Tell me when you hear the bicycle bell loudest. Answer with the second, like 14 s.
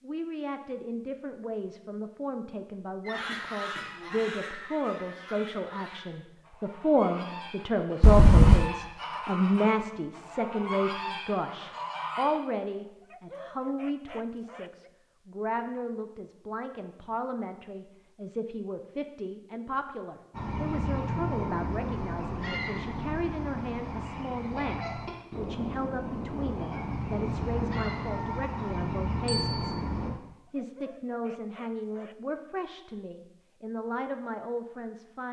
8 s.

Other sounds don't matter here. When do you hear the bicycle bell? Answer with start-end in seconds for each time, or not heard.
8.0-8.7, 29.2-29.8.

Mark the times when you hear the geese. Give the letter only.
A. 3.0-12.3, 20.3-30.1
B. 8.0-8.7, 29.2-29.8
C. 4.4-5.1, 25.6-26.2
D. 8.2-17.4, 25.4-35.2
A.